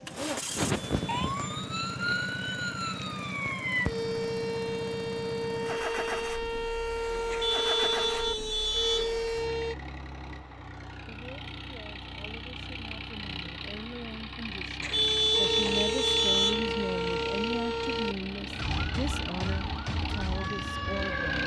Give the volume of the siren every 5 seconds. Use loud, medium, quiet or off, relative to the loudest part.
loud, loud, off, loud, loud.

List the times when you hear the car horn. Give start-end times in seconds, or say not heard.
0.8-1.3, 7.3-9.2, 14.8-16.6.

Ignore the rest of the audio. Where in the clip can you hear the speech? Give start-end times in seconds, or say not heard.
11.1-21.4.